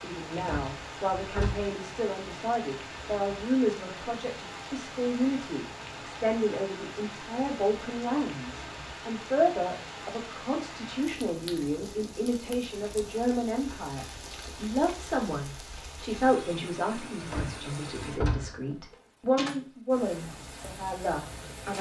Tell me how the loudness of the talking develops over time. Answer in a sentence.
The loudness of the talking stays about the same.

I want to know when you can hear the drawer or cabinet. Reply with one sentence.
You can hear the drawer or cabinet from 0.3 to 1.7 s and from 17.2 to 18.6 s.